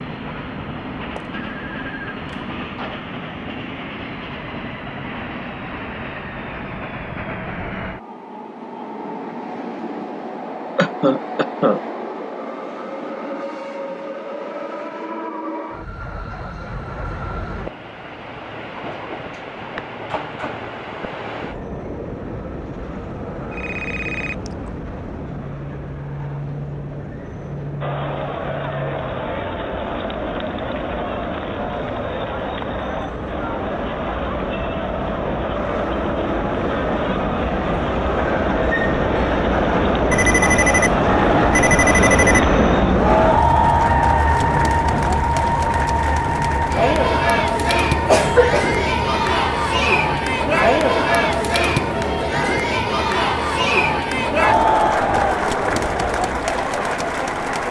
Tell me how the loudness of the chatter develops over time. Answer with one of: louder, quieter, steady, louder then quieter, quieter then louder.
louder.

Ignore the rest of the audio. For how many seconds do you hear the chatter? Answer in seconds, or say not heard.
30 s.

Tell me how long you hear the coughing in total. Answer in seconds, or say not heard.
2 s.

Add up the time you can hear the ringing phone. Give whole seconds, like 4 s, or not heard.
5 s.